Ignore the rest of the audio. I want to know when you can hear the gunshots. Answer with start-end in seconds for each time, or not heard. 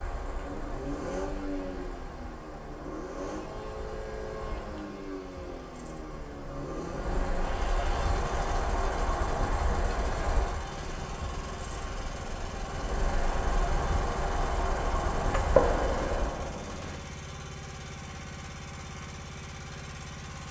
15.3-16.9.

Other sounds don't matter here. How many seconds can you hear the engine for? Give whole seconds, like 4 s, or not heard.
20 s.